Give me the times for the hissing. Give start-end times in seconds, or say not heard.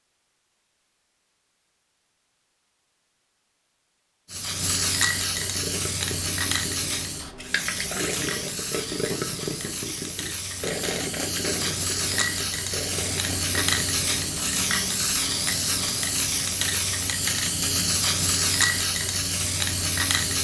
4.2-20.3.